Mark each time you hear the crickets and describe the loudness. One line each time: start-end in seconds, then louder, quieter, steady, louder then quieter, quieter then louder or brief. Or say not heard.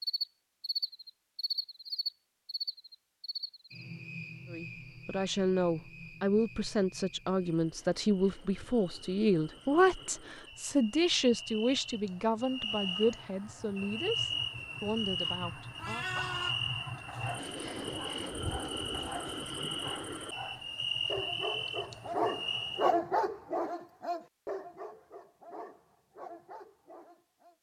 0.0-22.9 quieter then louder.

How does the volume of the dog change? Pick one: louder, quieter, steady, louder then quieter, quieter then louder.
louder then quieter.